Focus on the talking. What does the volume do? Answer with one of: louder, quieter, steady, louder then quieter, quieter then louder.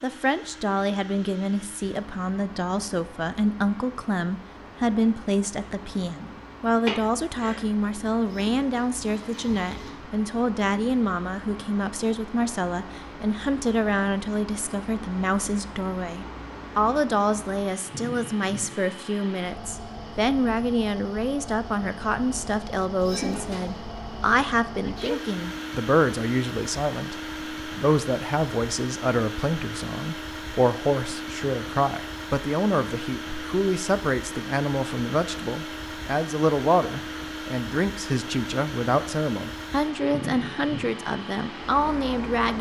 steady.